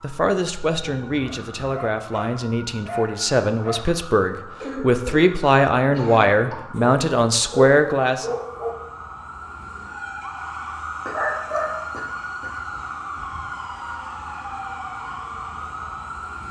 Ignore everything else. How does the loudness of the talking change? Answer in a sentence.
The volume of the talking goes up.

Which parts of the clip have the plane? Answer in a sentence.
The plane can't be heard in this clip.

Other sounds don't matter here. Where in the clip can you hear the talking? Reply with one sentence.
You can hear the talking from 0.0 to 8.3 s.